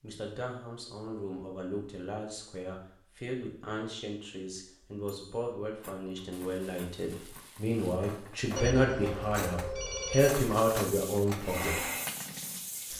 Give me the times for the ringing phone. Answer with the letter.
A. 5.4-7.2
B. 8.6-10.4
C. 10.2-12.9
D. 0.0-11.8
B.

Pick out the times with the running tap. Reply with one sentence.
The running tap can be heard from 10.2 to 12.9 s.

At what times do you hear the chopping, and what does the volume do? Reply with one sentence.
You can't hear the chopping here.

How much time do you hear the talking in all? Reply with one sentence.
You can hear the talking for 12 seconds altogether.